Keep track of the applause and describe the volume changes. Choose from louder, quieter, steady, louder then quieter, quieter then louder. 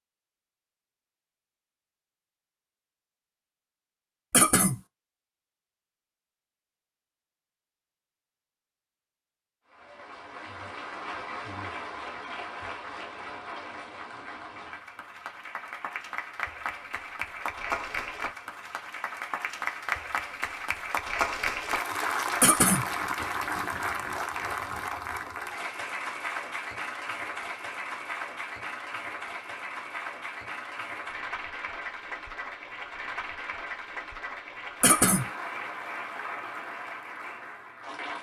louder then quieter.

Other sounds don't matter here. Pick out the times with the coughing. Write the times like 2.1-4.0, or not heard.
4.3-4.8, 22.4-22.9, 34.8-35.3.